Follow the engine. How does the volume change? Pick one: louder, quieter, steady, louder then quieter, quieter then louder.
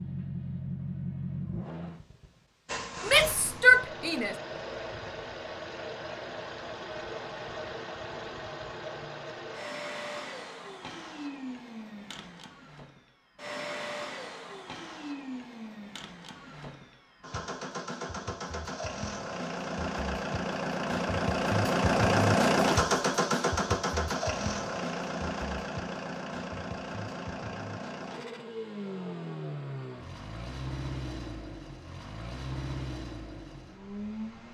louder then quieter.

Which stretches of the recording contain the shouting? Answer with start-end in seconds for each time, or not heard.
3.0-4.3.